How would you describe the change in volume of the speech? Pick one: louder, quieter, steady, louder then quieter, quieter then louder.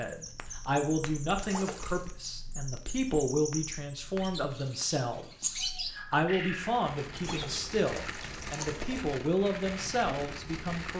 steady.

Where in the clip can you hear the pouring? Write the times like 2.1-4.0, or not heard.
1.4-2.1, 7.2-9.1.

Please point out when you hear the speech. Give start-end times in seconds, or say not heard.
0.0-10.9.